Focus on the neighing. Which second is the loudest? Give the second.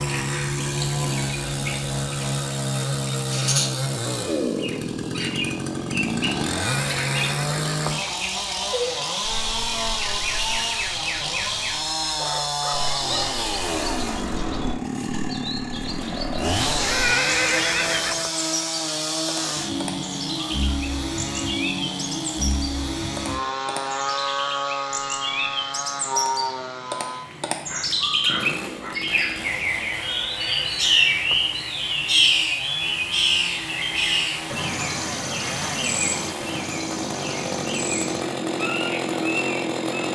17 s.